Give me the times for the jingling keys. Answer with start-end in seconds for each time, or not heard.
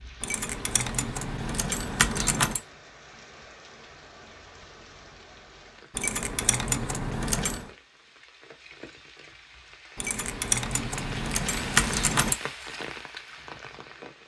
0.2-2.6, 6.0-7.7, 9.9-12.4.